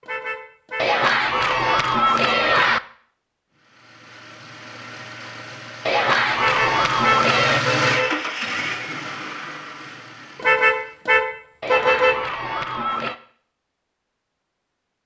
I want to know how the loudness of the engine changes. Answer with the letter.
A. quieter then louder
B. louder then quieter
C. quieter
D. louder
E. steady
B.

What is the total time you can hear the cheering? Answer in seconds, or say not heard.
5 s.